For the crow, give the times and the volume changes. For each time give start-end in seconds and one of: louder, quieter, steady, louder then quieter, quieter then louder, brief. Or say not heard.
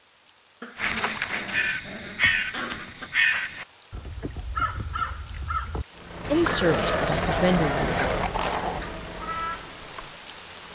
0.8-10.2 quieter.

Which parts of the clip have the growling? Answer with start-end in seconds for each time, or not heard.
0.6-3.1, 6.5-8.8.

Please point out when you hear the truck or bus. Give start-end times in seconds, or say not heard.
5.9-10.7.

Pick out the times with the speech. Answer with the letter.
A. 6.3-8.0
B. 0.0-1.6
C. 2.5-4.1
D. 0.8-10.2
A.